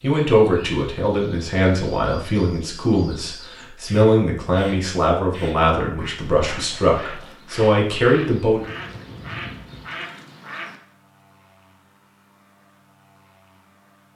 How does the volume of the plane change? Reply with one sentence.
The loudness of the plane goes down.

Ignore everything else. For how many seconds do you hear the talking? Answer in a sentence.
The talking can be heard for 9 seconds in total.